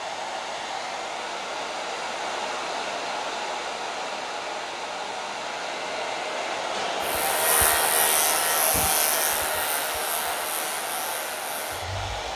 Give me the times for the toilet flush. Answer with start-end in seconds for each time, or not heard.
not heard.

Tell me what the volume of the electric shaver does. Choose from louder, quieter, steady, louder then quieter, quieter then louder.
quieter.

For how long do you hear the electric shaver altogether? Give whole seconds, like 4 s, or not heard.
5 s.